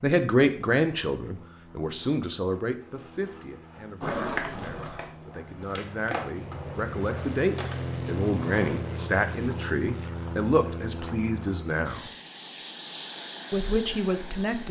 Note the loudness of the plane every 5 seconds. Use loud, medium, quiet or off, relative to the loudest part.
quiet, loud, loud.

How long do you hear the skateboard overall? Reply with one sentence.
The skateboard can be heard for 4 seconds in total.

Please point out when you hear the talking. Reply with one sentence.
You can hear the talking from 0.0 to 12.1 s and from 13.5 to 14.6 s.